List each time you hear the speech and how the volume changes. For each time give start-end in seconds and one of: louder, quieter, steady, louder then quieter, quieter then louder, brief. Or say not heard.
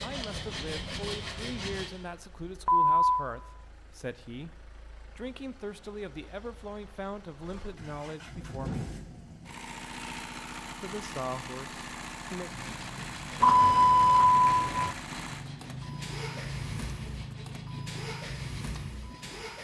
0.0-8.9 steady
10.8-12.5 brief.